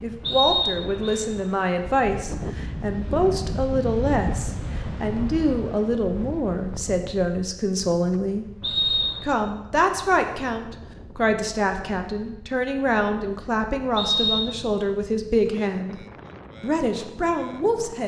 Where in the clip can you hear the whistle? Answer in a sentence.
The whistle can be heard from 0.2 to 1.2 s, from 8.6 to 9.2 s and from 13.9 to 14.5 s.